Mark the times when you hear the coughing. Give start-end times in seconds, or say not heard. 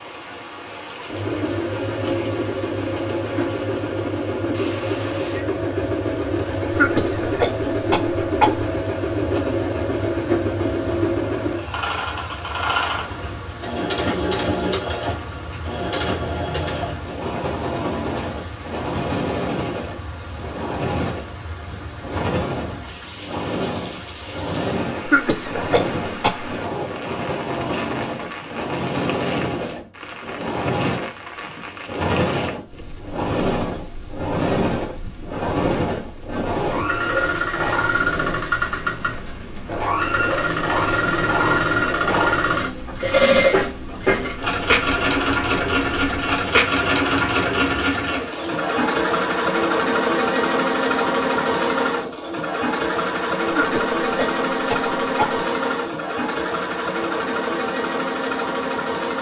6.7-8.7, 25.1-26.4, 53.5-55.5.